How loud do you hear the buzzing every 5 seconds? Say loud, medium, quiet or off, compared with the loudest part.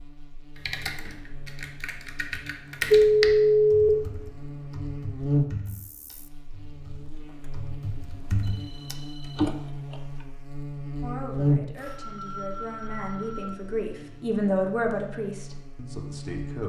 medium, loud, loud, medium.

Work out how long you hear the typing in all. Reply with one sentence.
The typing can be heard for 10 seconds in total.